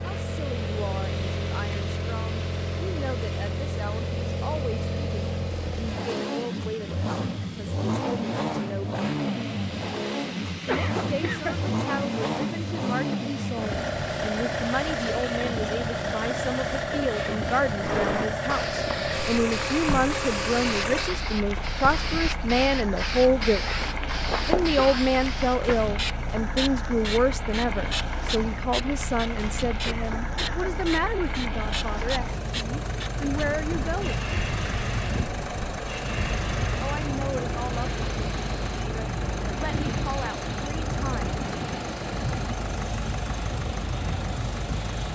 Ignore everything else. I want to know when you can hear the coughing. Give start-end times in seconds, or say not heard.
10.7-11.7, 29.8-30.8.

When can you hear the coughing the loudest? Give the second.
11 s.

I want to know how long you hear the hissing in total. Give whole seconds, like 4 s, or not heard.
45 s.